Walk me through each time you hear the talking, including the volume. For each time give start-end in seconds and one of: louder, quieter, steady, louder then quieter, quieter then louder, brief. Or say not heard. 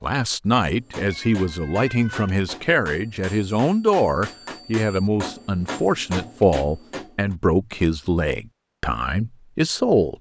0.0-10.1 steady.